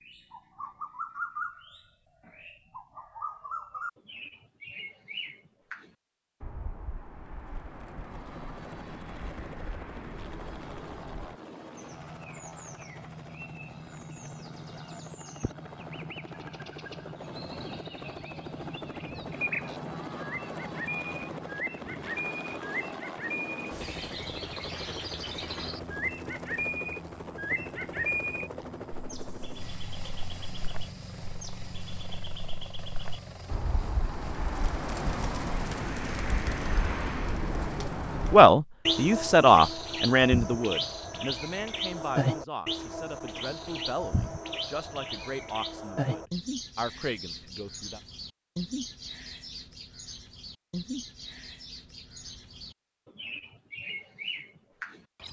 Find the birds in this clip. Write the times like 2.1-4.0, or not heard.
0.0-55.2.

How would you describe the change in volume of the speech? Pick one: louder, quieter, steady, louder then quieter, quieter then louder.
quieter.